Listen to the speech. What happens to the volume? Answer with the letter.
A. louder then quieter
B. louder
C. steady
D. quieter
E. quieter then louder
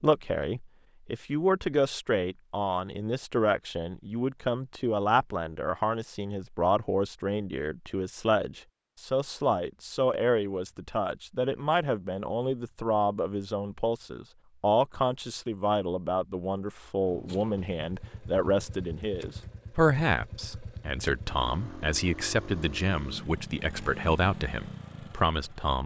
C.